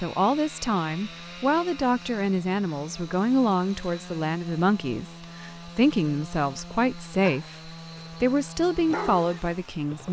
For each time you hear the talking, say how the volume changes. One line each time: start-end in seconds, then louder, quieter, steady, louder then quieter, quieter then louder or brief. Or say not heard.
0.0-10.0 steady.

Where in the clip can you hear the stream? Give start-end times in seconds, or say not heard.
not heard.